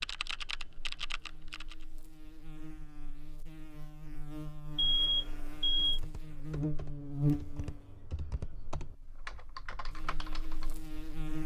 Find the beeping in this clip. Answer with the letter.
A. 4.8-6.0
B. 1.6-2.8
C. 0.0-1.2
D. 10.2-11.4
A.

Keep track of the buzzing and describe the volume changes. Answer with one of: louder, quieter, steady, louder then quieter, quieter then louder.
louder then quieter.